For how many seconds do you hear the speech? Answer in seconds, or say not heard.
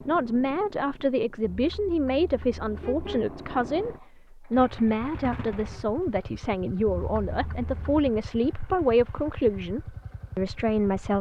11 s.